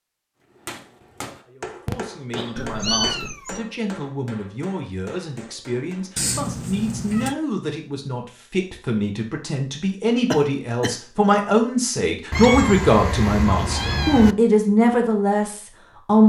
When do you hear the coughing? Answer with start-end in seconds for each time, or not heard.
1.9-3.1, 10.3-11.0.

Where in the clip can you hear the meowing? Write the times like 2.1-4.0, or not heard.
2.5-3.6, 6.2-7.3, 12.3-14.3.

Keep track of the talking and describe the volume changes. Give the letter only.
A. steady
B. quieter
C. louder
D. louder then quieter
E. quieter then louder
C.